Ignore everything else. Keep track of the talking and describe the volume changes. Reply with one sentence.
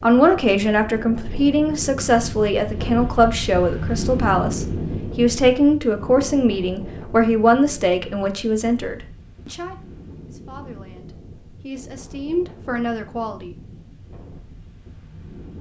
The volume of the talking goes down.